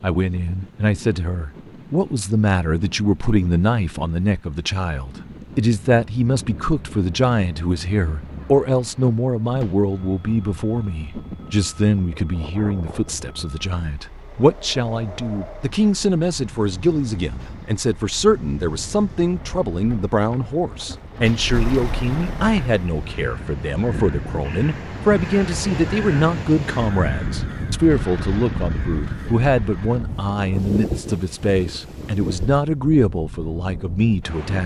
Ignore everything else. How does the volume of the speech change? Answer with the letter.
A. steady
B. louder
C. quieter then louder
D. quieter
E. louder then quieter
A.